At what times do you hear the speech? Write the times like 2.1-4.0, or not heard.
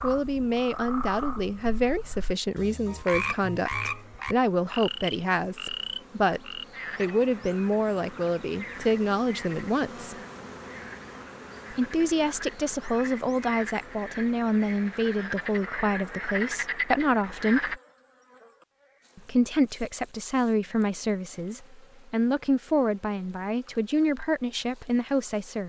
0.0-10.2, 11.7-17.8, 19.1-25.6.